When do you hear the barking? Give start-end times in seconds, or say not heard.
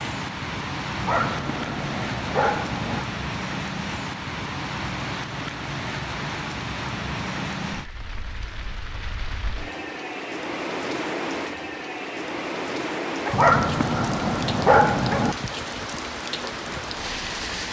1.0-3.0, 13.3-15.3.